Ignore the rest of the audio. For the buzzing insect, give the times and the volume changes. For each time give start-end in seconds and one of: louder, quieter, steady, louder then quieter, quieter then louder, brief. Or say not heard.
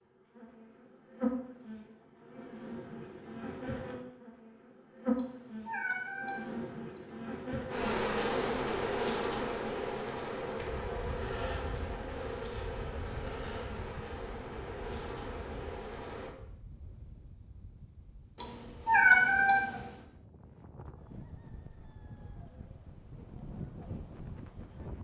0.0-16.3 louder then quieter.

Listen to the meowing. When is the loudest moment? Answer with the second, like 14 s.
19 s.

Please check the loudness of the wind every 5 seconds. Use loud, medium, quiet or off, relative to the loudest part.
off, off, loud, medium, loud.